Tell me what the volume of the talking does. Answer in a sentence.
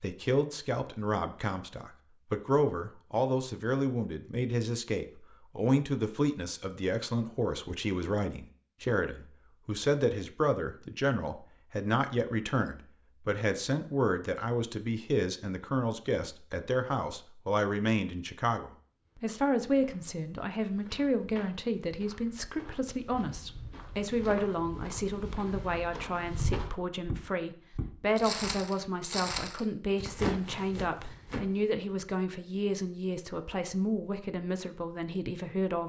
The volume of the talking stays about the same.